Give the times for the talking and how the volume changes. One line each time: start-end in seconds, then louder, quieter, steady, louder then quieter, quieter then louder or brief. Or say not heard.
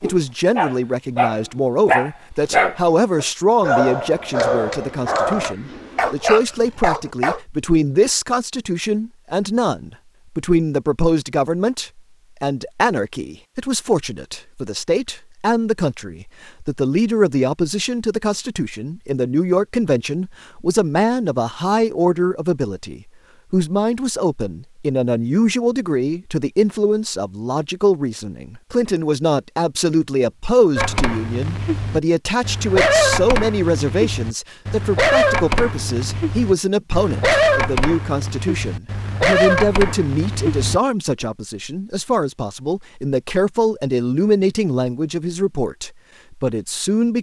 0.0-47.1 steady.